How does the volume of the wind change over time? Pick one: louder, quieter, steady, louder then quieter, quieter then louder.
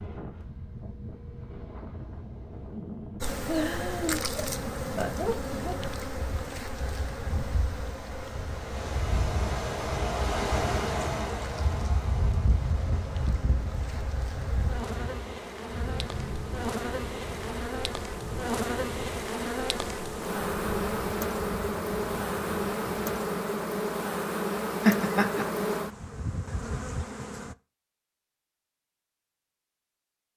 louder then quieter.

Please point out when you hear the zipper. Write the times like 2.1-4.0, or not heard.
not heard.